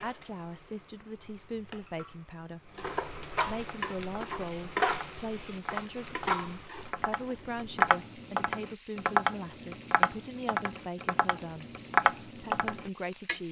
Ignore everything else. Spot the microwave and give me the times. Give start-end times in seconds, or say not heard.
not heard.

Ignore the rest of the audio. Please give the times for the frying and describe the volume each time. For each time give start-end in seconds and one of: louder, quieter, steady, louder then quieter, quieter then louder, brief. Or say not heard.
0.0-13.4 louder then quieter.